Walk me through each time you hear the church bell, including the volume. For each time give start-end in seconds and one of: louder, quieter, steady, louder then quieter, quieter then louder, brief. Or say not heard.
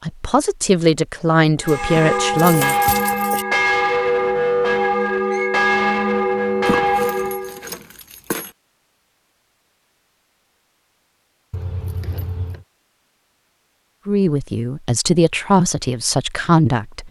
1.6-7.7 steady.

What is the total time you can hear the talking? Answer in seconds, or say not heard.
6 s.